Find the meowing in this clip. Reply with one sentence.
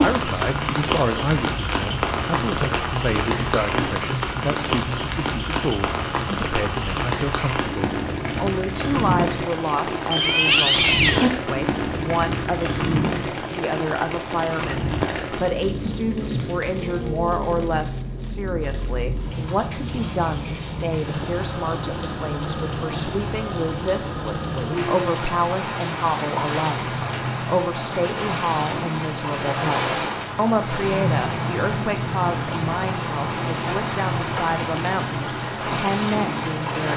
You can hear the meowing from 10.1 to 11.3 s.